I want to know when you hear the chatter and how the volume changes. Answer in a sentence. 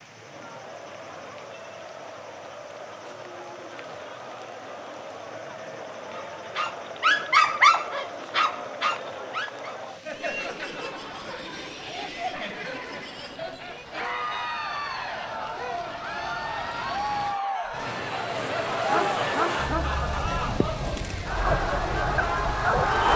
The chatter can be heard from 0.0 to 23.1 s, getting louder.